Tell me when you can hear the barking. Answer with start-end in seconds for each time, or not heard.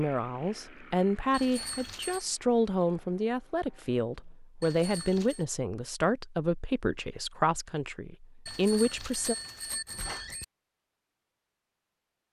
not heard.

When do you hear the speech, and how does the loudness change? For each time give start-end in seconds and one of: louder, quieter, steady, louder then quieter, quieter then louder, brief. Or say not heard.
0.0-9.3 steady.